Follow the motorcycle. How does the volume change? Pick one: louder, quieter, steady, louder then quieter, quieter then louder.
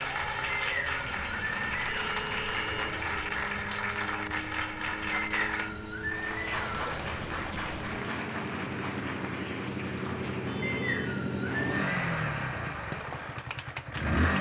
louder.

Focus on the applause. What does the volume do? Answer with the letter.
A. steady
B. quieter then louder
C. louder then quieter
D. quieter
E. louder
D.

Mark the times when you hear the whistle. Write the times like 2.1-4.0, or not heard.
0.5-2.1, 5.1-6.9, 10.6-12.2.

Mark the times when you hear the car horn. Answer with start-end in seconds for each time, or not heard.
1.9-3.0, 10.4-11.2.